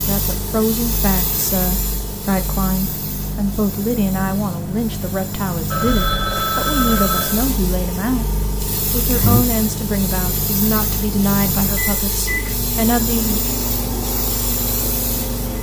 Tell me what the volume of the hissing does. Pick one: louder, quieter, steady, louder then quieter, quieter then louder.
quieter then louder.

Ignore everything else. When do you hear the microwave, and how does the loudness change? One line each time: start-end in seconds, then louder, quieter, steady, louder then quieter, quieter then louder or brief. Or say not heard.
0.0-15.5 steady.